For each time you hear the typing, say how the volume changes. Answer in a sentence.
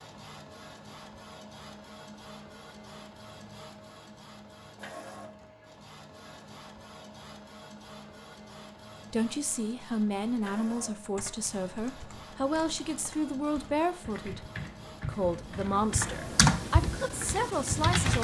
The typing can be heard from 11.2 to 18.1 s, getting louder.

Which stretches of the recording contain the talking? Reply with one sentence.
The talking can be heard from 9.1 to 14.4 s and from 15.1 to 18.1 s.